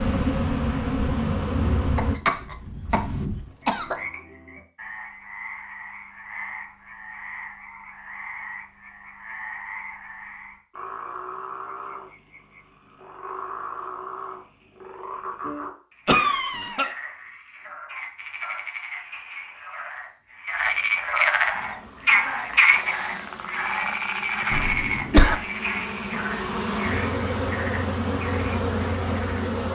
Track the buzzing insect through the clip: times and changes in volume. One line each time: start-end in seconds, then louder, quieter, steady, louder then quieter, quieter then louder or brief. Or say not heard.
0.0-2.2 brief
21.5-29.7 louder.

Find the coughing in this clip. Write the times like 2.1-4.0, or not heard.
1.9-4.0, 16.1-16.9, 24.5-25.4.